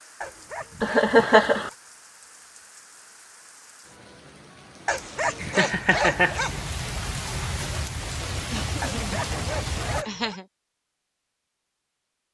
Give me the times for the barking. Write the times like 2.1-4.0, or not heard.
0.2-1.8, 4.8-6.7, 8.8-10.4.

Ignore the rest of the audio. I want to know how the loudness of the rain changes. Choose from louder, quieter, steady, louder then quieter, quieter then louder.
louder.